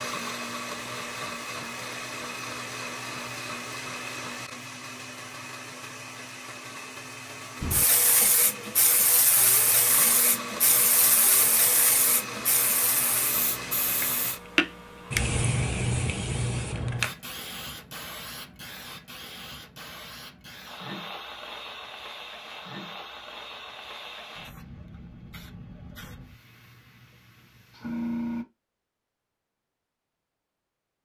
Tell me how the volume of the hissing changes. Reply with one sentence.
The volume of the hissing goes down.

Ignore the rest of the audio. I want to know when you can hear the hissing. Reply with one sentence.
The hissing can be heard from 7.6 to 28.4 s.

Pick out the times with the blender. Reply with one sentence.
You can hear the blender from 0.0 to 14.4 s.